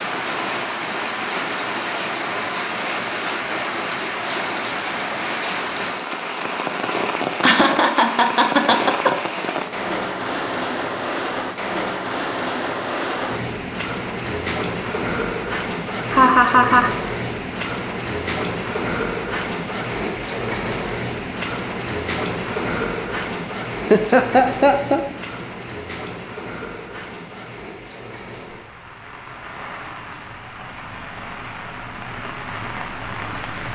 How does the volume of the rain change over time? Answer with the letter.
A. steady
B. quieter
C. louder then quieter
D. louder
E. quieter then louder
B.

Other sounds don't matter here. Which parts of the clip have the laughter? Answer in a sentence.
The laughter can be heard from 7.4 to 9.2 s, from 16.1 to 16.9 s and from 23.9 to 25.4 s.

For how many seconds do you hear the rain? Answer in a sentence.
The rain can be heard for 34 seconds in total.